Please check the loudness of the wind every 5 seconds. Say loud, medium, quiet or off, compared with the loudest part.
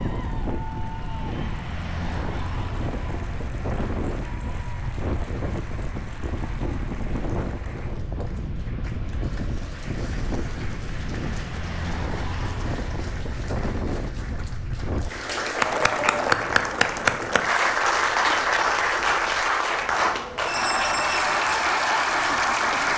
loud, loud, loud, quiet, quiet.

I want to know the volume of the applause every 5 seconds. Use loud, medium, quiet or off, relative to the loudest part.
quiet, quiet, quiet, loud, loud.